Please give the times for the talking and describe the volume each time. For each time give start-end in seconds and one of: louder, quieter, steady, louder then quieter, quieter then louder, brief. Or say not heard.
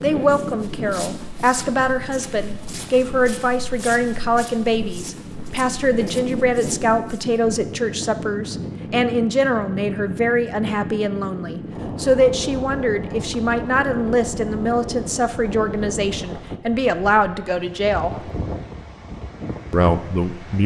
0.0-18.1 steady
19.7-20.6 brief.